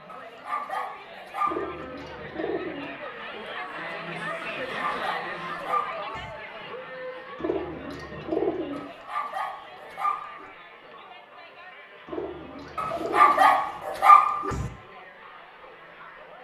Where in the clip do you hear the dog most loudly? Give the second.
14 s.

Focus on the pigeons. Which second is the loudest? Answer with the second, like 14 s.
8 s.